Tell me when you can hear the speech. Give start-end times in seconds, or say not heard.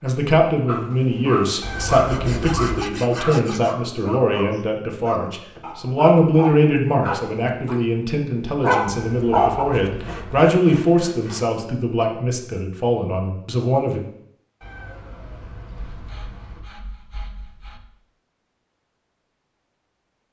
0.0-14.0.